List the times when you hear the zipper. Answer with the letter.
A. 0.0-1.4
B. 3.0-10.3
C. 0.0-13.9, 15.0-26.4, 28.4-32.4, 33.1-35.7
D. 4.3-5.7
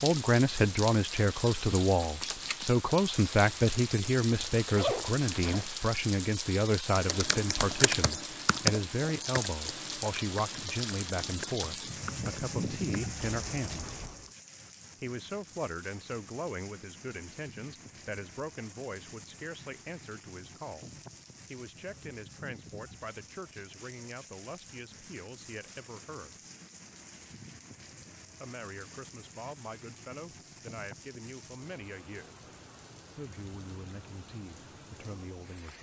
D.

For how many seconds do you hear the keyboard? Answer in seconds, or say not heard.
7 s.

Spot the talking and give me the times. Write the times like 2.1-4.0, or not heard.
0.0-13.9, 15.0-26.4, 28.4-32.4, 33.1-35.7.